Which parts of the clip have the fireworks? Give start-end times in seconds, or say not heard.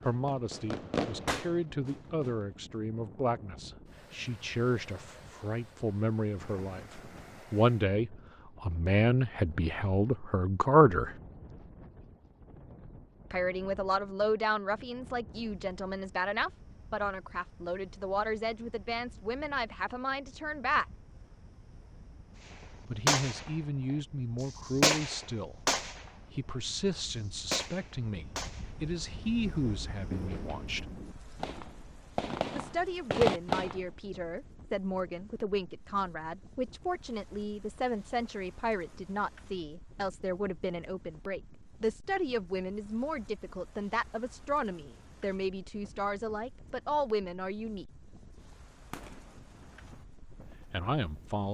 0.0-2.6, 23.1-23.5, 24.4-26.1, 27.4-28.8, 29.6-33.8, 48.9-49.6.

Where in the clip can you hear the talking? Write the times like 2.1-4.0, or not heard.
0.0-11.2, 13.3-20.9, 22.9-30.9, 32.5-47.9, 50.4-51.5.